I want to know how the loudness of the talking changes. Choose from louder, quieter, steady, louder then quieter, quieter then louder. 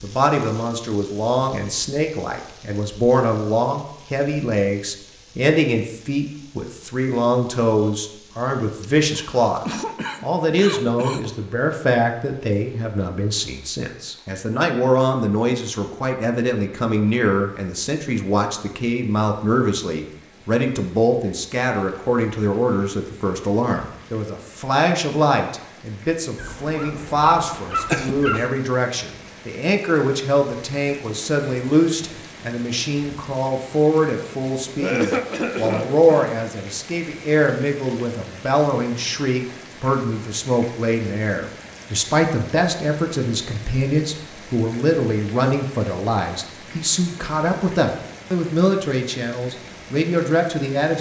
steady.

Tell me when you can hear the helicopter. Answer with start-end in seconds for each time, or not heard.
not heard.